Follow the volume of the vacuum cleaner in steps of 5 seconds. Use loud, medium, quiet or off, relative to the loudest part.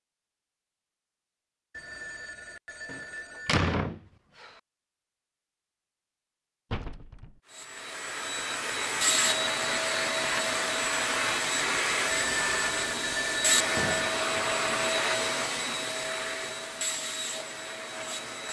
off, loud, loud, medium.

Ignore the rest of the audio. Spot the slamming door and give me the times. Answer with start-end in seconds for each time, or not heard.
2.9-4.5, 6.7-7.4, 13.8-14.2.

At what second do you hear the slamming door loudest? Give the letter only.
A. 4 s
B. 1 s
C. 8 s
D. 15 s
A.